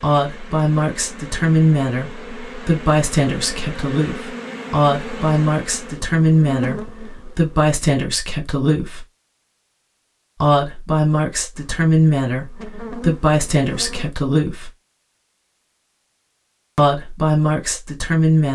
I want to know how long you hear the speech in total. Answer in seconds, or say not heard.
15 s.